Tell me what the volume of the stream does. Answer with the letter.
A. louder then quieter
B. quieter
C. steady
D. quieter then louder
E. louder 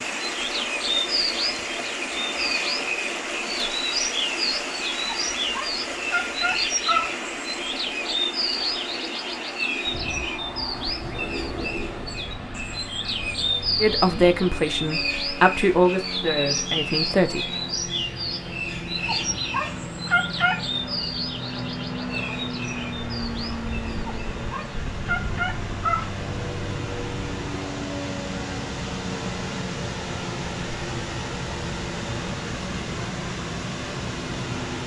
D.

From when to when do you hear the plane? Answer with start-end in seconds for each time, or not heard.
0.0-34.8.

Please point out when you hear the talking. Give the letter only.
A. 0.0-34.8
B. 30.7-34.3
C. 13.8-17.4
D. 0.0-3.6
C.